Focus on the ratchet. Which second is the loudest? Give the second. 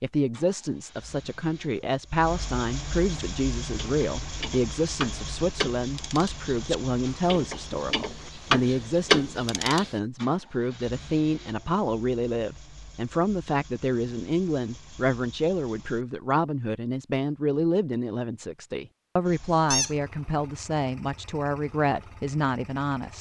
9 s.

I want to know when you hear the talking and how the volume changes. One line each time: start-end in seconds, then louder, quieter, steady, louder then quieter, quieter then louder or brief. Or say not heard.
0.0-23.1 steady.